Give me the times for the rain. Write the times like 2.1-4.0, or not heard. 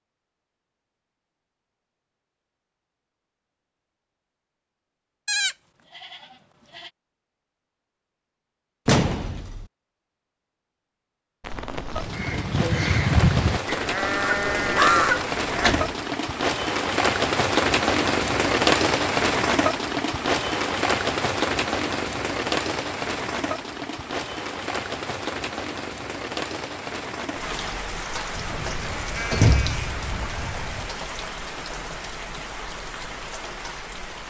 11.4-34.2.